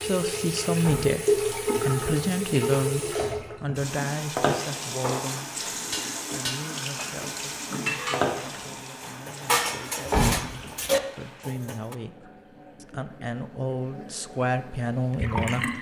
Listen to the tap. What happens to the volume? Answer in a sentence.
The volume of the tap goes down.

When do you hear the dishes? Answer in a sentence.
The dishes can be heard from 4.8 to 11.9 s.